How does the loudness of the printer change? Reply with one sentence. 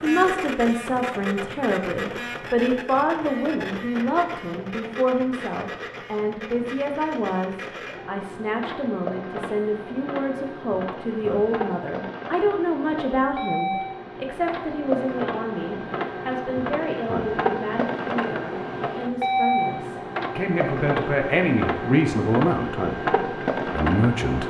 The loudness of the printer goes up.